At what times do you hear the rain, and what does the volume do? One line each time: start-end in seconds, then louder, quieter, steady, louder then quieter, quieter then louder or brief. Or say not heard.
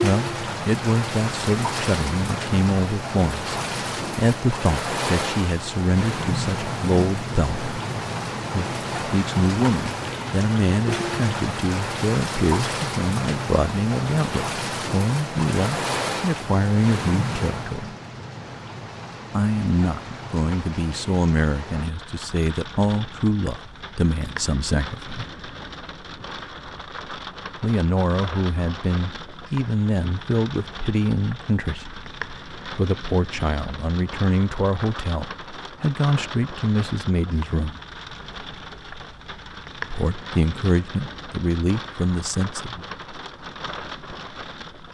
0.0-44.8 quieter.